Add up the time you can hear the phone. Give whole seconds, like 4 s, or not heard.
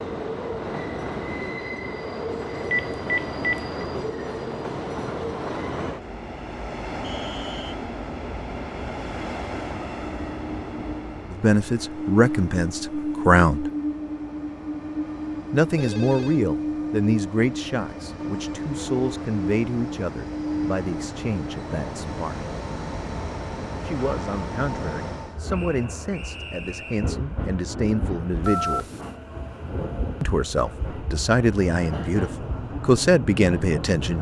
2 s.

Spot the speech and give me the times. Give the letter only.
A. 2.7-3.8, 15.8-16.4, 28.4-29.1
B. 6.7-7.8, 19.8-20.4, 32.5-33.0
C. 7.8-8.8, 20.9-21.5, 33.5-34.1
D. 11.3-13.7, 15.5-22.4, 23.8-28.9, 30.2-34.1
D.